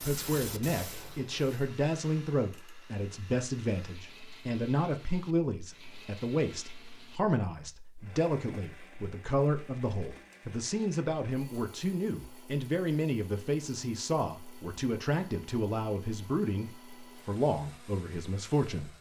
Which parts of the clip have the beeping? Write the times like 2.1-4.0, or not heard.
not heard.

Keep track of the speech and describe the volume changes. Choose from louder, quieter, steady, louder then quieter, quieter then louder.
steady.